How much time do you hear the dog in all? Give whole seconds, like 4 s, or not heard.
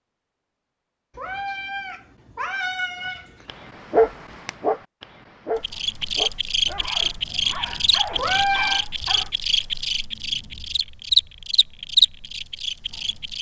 6 s.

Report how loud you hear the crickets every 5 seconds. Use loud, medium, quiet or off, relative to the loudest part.
off, loud, loud.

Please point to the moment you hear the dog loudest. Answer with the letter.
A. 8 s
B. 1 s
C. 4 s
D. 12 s
C.